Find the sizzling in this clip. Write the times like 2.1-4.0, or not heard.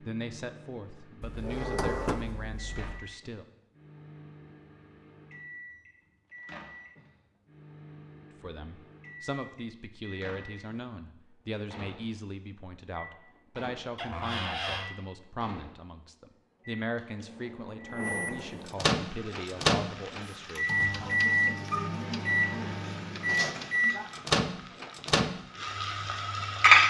18.9-26.8.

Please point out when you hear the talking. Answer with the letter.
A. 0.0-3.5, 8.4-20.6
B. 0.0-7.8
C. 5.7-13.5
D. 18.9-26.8
A.